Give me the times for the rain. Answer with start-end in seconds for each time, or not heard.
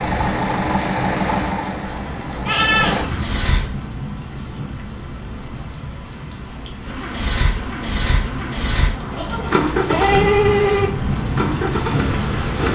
0.0-12.7.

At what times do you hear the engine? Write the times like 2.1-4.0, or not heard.
0.0-3.7, 6.8-12.7.